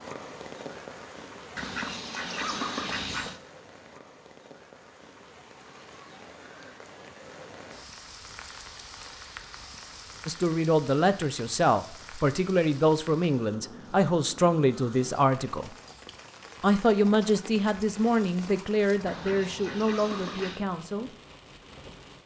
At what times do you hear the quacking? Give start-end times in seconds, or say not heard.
1.6-3.4, 19.1-20.6.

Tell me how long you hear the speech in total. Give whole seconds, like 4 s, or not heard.
10 s.